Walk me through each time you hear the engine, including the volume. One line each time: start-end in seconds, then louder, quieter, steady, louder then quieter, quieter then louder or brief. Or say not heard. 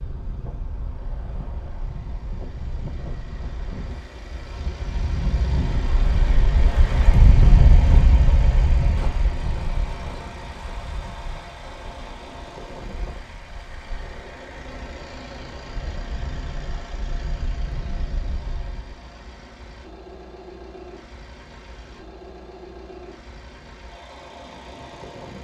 0.0-25.3 louder then quieter.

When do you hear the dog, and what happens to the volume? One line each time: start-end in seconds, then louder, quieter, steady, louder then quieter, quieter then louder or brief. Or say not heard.
not heard.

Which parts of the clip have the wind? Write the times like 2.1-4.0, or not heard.
0.0-18.9.